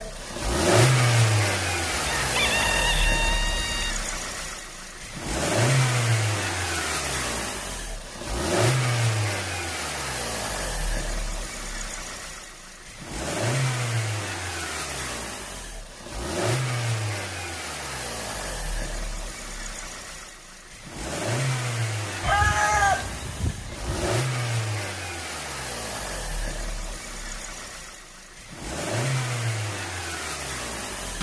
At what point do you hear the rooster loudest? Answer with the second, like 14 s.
23 s.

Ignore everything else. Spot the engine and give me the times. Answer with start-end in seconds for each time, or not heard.
0.0-31.1.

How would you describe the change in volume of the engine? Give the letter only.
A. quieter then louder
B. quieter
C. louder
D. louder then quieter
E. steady
B.